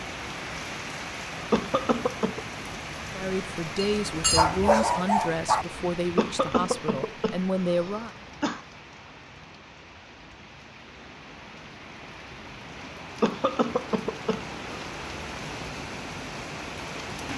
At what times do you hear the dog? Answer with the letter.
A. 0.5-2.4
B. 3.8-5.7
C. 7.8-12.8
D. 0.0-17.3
B.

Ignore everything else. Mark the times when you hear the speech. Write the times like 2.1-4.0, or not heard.
3.1-8.2.